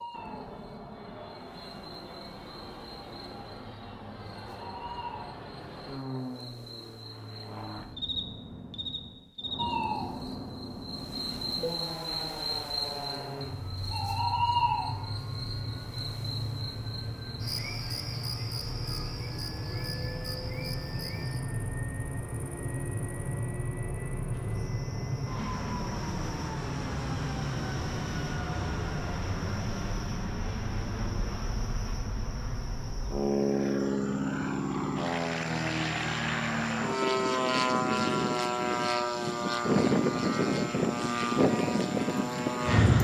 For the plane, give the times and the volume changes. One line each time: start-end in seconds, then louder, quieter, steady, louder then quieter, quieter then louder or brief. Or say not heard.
0.0-42.9 louder.